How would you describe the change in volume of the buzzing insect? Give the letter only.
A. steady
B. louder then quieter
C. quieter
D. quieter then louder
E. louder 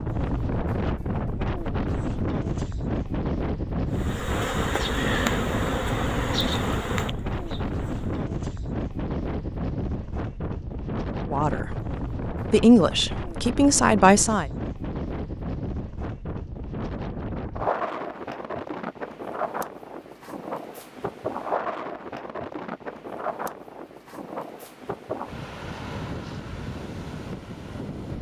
C.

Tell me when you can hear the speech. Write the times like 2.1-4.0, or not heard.
11.3-11.8, 12.5-14.4.